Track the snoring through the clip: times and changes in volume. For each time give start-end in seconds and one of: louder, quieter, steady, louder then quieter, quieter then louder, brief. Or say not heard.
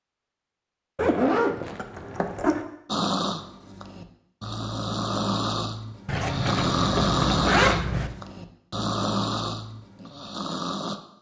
2.9-11.0 louder then quieter.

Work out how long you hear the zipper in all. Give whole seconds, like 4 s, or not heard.
4 s.